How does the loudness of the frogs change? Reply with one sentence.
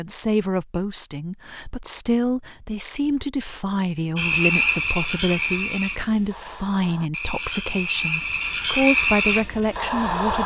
The volume of the frogs goes down, then up.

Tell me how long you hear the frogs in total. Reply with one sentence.
You can hear the frogs for 6 seconds altogether.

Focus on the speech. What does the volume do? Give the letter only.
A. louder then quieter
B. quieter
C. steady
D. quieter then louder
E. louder
C.